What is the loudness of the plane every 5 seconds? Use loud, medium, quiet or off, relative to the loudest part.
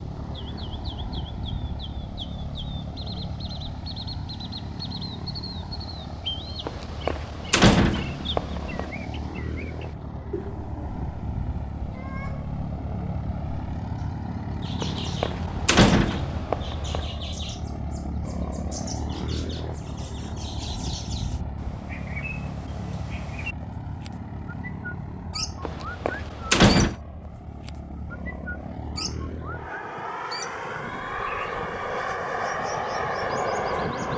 medium, medium, medium, medium, medium, medium, loud.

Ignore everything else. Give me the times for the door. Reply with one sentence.
The door can be heard from 6.7 to 8.9 s, from 14.8 to 17.1 s and from 25.6 to 26.9 s.